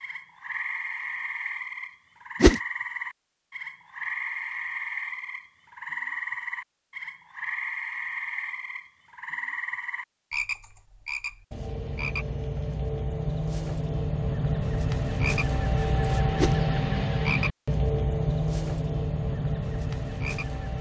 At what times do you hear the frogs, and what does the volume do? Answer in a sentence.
The frogs can be heard from 0.0 to 20.7 s, getting louder.